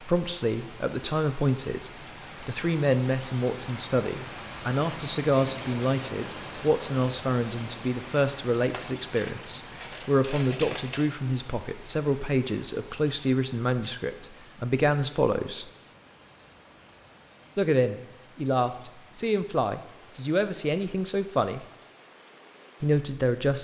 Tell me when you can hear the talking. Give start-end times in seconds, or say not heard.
0.0-15.7, 17.6-21.6, 22.8-23.5.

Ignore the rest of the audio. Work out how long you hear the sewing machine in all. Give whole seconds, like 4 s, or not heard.
not heard.